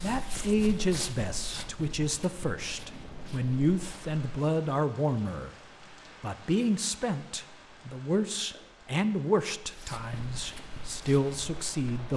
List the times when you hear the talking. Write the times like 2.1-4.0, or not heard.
0.0-5.5, 6.2-12.1.